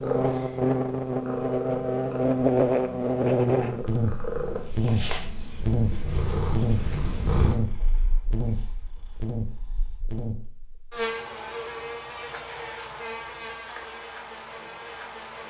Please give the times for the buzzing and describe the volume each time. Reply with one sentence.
You can hear the buzzing from 0.0 to 15.4 s, getting quieter.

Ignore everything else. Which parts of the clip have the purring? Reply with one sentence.
The purring can be heard from 0.0 to 10.2 s.